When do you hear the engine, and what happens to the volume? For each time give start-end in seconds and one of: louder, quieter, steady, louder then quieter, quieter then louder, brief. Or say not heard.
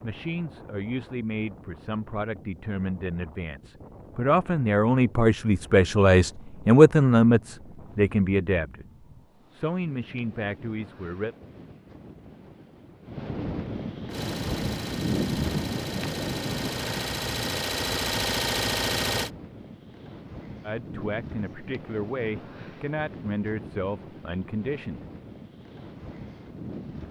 14.1-19.3 louder.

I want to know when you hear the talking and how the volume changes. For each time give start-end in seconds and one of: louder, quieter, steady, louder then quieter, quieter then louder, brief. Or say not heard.
0.0-11.3 louder then quieter
20.6-25.0 steady.